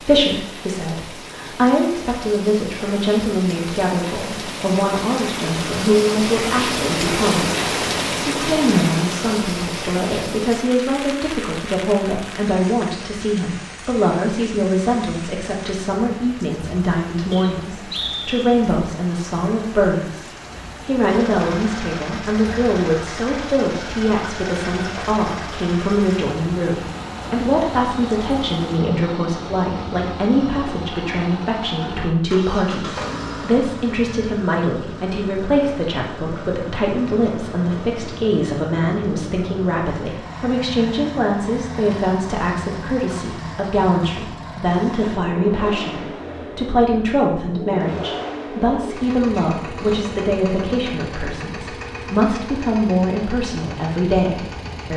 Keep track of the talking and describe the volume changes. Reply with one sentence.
The volume of the talking stays about the same.